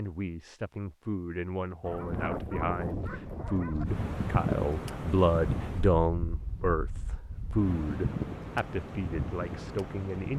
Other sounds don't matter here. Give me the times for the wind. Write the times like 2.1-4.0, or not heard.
1.8-10.3.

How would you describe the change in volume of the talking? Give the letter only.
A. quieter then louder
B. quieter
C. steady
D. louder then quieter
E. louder
D.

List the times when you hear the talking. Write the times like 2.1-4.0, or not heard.
0.0-10.3.